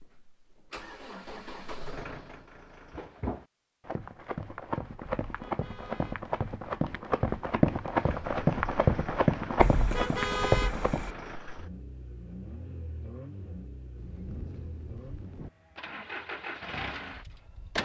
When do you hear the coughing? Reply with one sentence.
You can't hear the coughing here.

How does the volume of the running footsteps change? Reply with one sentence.
The volume of the running footsteps goes up.